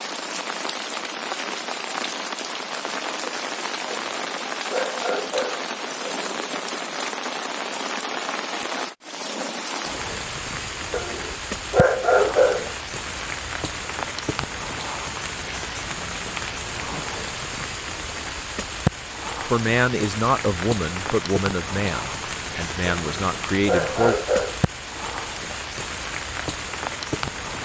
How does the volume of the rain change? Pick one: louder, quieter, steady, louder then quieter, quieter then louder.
steady.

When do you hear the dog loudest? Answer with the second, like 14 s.
12 s.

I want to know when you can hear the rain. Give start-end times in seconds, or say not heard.
0.0-27.6.